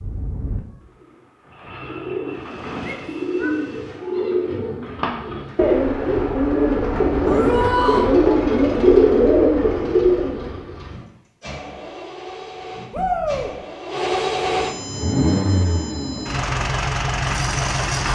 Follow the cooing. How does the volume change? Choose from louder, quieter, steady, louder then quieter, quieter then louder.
louder.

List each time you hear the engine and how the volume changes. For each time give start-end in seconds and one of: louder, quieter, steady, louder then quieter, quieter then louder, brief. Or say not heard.
2.2-18.0 louder.